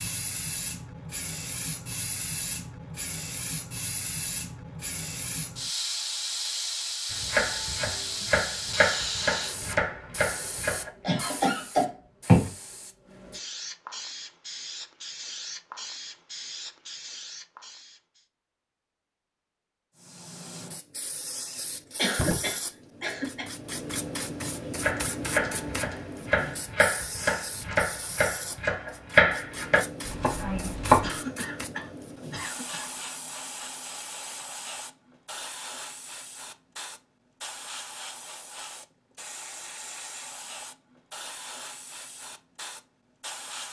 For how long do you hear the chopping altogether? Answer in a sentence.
You can hear the chopping for 10 seconds altogether.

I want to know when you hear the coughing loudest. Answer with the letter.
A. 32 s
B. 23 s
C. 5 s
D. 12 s
D.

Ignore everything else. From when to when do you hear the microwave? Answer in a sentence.
You can't hear the microwave here.